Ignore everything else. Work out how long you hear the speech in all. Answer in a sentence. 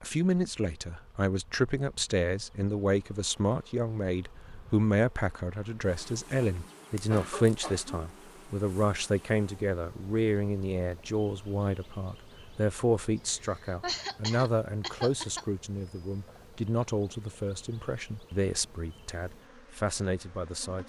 You can hear the speech for 21 seconds altogether.